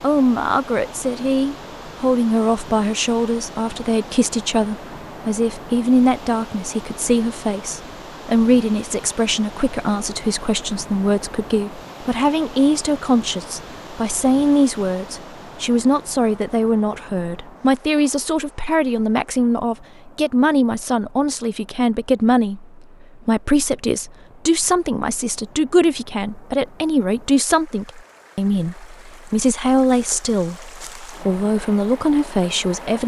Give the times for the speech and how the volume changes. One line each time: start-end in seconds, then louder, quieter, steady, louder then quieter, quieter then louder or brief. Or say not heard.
0.0-33.0 steady.